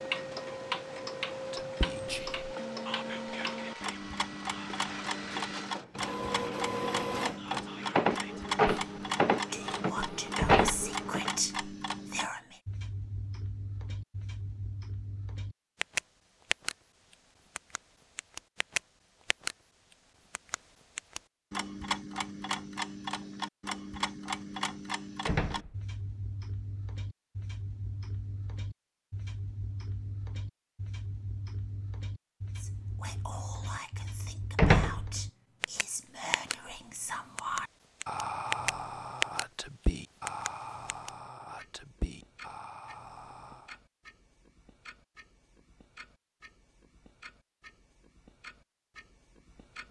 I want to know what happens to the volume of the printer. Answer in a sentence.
The volume of the printer goes up.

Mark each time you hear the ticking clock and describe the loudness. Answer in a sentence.
You can hear the ticking clock from 0.0 to 19.6 s, getting quieter then louder; from 20.3 to 36.5 s, getting quieter; and from 37.4 to 49.8 s, getting quieter.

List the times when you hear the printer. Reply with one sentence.
The printer can be heard from 0.1 to 11.3 s.